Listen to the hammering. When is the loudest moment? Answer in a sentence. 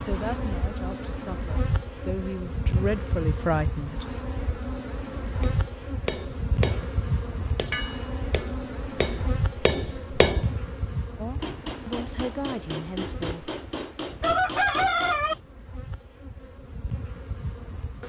The volume of the hammering peaks at 10 seconds.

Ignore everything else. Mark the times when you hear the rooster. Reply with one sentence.
The rooster can be heard from 14.2 to 15.3 s.